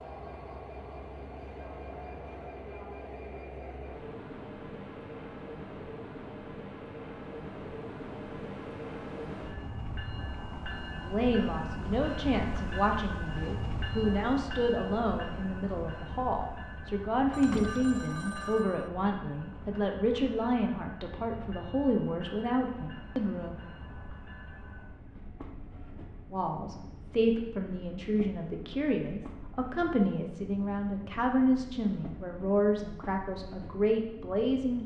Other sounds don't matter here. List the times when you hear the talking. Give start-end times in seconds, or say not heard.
11.1-23.6, 26.3-34.8.